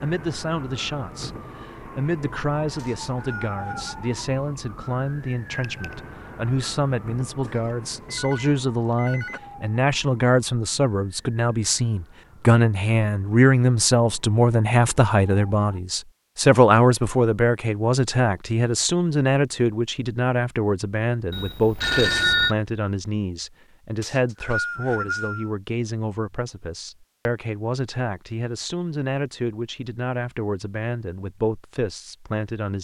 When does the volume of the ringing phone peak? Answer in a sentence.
The loudest moment of the ringing phone is at 22 seconds.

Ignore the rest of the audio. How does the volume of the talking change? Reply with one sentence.
The volume of the talking goes up, then down.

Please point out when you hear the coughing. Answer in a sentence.
You can't hear the coughing here.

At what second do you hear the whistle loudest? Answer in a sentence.
The volume of the whistle peaks at 25 seconds.